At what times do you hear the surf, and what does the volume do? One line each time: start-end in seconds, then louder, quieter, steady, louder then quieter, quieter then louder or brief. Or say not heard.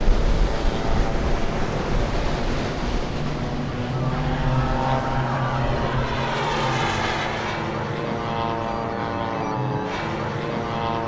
0.0-5.7 quieter.